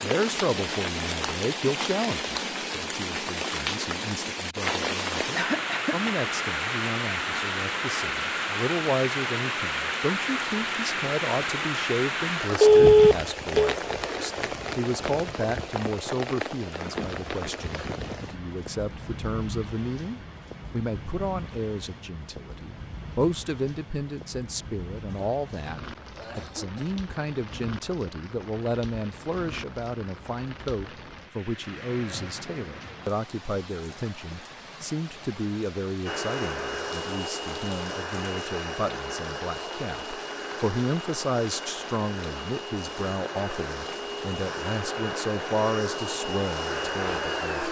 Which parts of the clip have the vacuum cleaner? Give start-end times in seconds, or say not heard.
36.0-47.6.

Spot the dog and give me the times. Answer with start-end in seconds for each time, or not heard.
not heard.